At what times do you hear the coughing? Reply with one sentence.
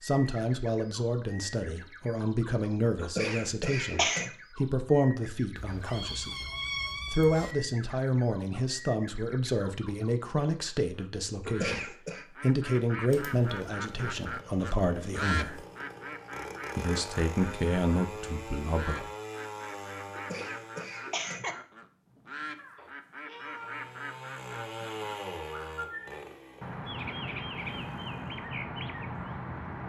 The coughing can be heard from 3.0 to 4.3 s, from 11.4 to 12.2 s and from 20.1 to 21.6 s.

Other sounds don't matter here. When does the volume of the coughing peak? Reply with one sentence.
The volume of the coughing peaks at 4 seconds.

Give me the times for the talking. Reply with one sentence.
The talking can be heard from 0.0 to 6.5 s, from 7.1 to 15.6 s and from 16.8 to 19.1 s.